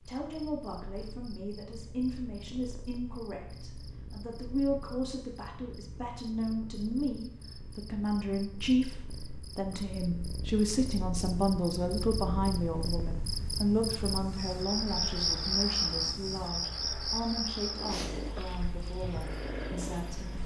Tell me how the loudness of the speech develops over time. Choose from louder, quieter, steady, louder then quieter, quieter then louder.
louder then quieter.